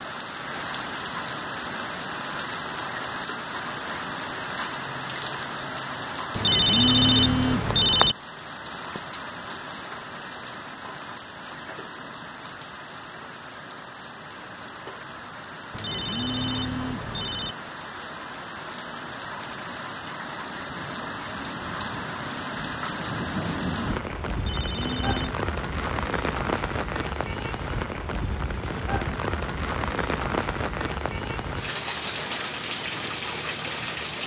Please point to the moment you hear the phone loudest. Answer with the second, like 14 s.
7 s.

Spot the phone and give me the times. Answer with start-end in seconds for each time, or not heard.
6.3-8.2, 15.7-17.6, 24.4-25.4.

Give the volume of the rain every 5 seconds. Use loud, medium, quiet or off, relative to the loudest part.
loud, loud, medium, medium, loud, loud, loud.